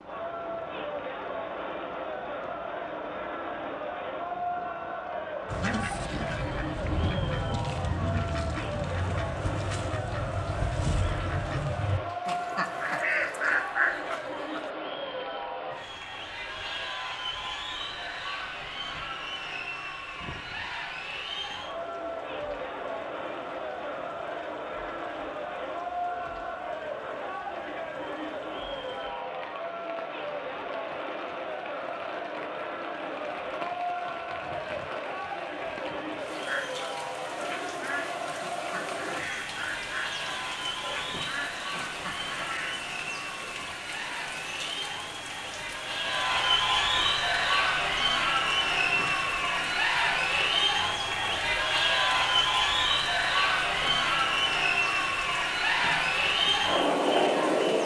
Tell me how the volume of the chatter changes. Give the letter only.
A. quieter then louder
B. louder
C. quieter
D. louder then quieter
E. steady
B.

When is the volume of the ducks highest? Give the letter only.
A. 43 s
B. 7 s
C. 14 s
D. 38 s
C.